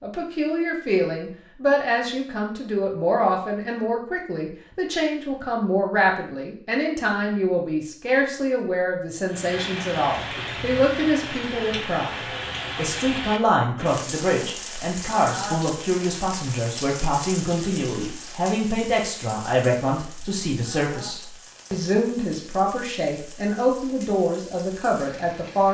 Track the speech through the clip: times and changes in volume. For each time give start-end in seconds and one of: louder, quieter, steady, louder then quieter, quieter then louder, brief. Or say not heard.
0.0-25.7 steady.